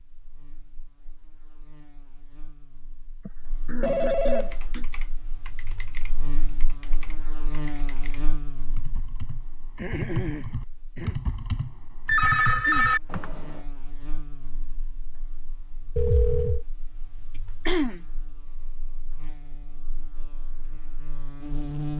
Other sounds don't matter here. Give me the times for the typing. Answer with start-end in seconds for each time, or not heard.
4.4-13.7.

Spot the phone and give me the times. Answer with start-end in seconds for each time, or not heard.
3.8-4.6, 12.1-13.0, 15.9-16.6.